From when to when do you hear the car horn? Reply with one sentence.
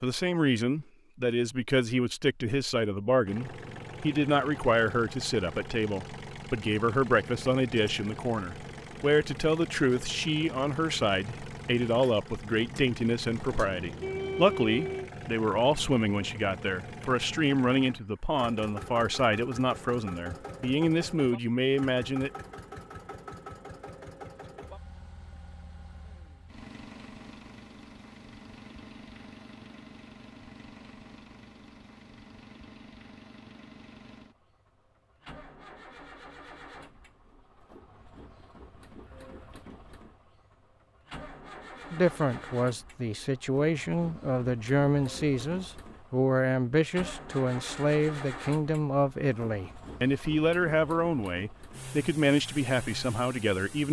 You can hear the car horn from 13.6 to 15.1 s.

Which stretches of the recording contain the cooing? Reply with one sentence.
You can't hear the cooing here.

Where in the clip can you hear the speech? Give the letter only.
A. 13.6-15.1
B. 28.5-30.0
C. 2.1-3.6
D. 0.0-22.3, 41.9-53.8
D.